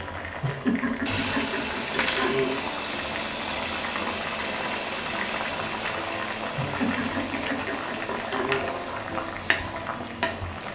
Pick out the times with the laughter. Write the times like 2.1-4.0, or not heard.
0.4-2.6, 6.5-8.7.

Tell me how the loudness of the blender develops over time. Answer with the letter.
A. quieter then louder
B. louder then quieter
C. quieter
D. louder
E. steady
C.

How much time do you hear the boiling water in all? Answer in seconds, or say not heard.
11 s.